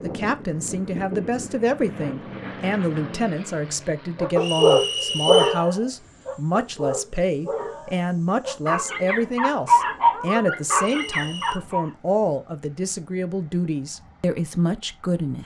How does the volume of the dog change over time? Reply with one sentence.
The volume of the dog goes down, then up.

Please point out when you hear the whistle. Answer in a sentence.
The whistle can be heard from 4.4 to 5.7 s and from 10.8 to 11.6 s.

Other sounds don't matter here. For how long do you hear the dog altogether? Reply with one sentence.
The dog can be heard for 8 seconds in total.